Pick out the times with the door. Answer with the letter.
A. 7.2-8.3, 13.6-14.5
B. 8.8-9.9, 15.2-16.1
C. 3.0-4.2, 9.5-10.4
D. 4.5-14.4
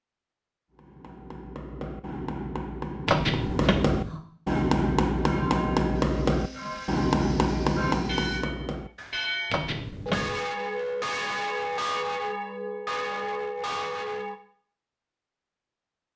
C.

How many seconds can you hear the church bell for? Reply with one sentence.
The church bell can be heard for 10 seconds in total.